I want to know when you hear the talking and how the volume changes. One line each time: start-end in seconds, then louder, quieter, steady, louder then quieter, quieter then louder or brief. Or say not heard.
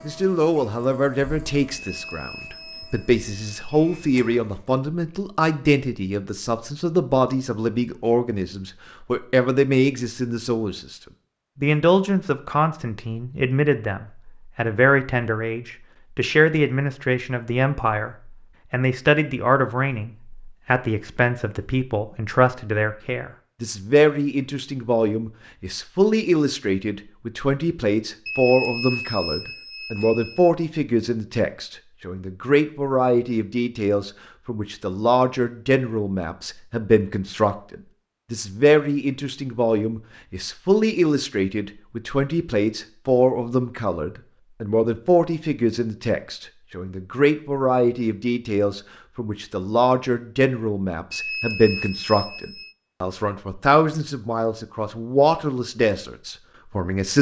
0.1-11.0 steady
11.6-57.1 steady.